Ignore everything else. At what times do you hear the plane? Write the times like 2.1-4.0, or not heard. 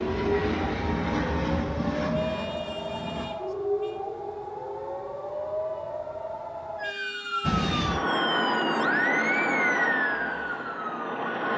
0.0-3.3, 7.4-11.5.